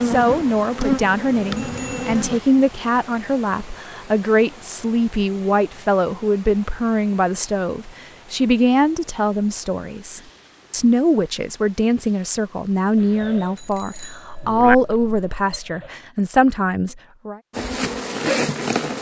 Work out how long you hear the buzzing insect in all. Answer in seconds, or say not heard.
4 s.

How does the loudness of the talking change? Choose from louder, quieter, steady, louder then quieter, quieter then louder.
steady.